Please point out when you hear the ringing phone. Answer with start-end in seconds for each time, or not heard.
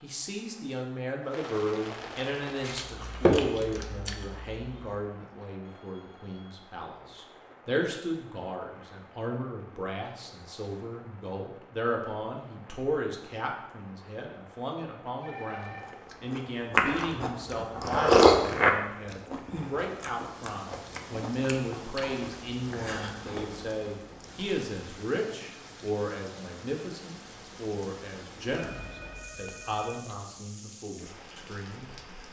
5.7-7.2, 15.2-15.9, 28.6-30.2.